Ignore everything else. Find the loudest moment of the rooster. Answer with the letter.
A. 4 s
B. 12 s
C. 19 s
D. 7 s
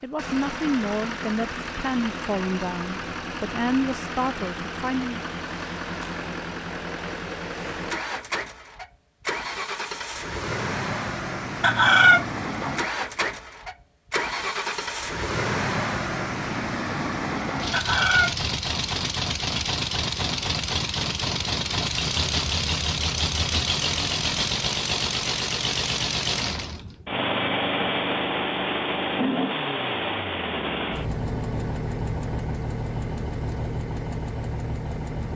B.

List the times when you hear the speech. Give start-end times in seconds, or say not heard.
0.0-5.2.